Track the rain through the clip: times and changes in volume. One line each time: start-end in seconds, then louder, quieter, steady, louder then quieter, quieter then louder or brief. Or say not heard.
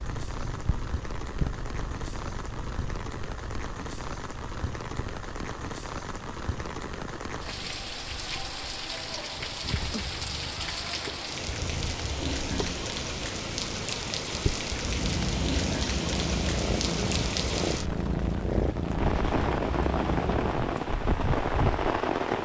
0.0-22.4 louder.